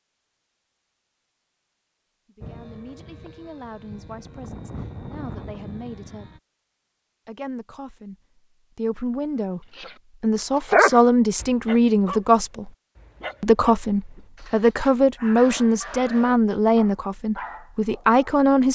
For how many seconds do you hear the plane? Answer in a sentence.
The plane can be heard for 4 seconds in total.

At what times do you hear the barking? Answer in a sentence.
The barking can be heard from 9.8 to 18.2 s.